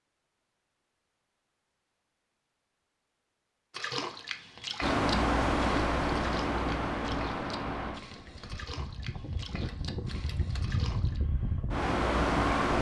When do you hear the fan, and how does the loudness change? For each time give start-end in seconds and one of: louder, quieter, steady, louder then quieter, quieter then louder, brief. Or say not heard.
4.8-12.7 quieter then louder.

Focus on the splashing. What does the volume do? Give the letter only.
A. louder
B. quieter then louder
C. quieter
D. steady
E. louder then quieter
C.